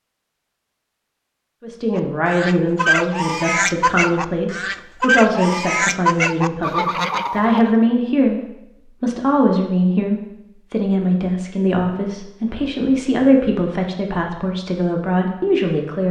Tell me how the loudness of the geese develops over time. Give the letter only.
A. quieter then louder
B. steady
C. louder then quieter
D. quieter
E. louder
B.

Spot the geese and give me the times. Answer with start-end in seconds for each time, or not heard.
1.9-7.8.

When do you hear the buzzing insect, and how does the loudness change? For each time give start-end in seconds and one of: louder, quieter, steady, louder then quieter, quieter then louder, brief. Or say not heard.
not heard.